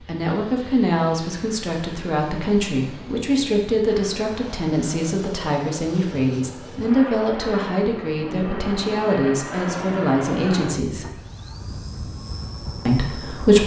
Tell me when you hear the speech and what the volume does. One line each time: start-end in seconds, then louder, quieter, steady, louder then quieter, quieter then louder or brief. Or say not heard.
0.0-11.2 steady
12.8-13.6 brief.